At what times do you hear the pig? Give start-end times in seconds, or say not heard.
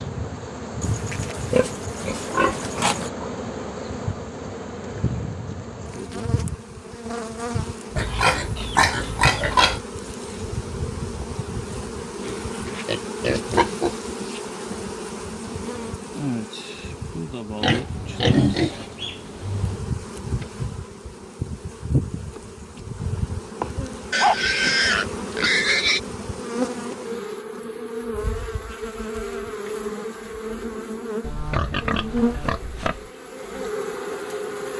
0.8-3.1, 8.0-9.8, 12.2-13.9, 17.6-19.8, 24.1-26.0, 31.2-33.1.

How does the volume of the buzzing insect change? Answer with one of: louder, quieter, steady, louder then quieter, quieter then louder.
steady.